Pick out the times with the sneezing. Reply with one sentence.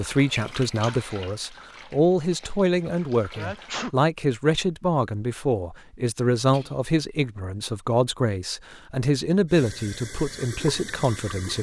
You can hear the sneezing from 3.4 to 4.0 s and from 6.3 to 6.8 s.